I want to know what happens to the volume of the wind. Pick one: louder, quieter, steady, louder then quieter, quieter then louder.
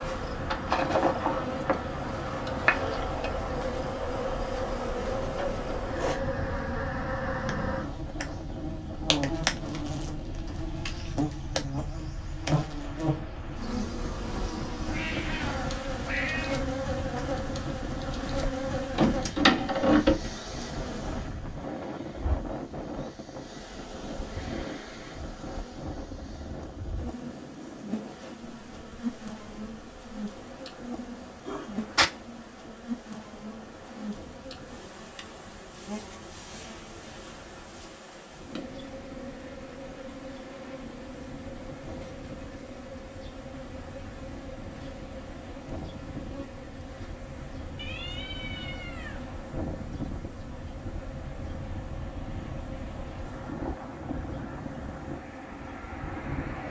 quieter then louder.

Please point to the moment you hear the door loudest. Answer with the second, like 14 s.
20 s.